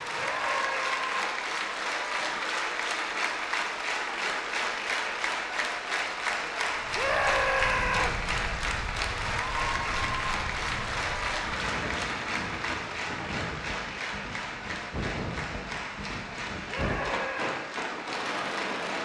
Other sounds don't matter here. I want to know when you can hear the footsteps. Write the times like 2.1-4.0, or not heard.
not heard.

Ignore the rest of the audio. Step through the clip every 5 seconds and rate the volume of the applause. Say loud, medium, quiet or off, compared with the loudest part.
loud, loud, loud, medium.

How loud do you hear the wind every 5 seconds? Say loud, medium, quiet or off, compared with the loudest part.
off, medium, medium, loud.